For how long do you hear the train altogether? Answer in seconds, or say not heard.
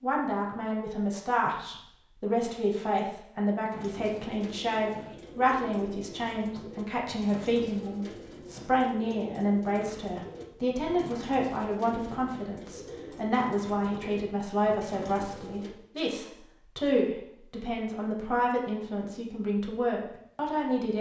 not heard.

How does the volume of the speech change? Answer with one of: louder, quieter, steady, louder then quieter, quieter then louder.
steady.